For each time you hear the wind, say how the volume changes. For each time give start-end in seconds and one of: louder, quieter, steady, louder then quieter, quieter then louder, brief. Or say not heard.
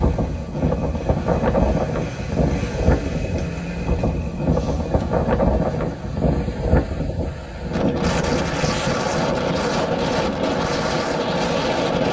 0.0-12.0 steady.